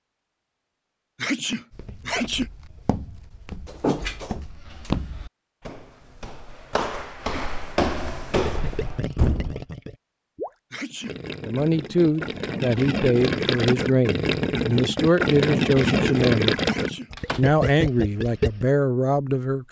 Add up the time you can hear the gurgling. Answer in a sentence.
The gurgling can be heard for 10 seconds in total.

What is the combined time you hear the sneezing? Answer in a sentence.
The sneezing can be heard for 3 seconds in total.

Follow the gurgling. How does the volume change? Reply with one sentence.
The volume of the gurgling goes up.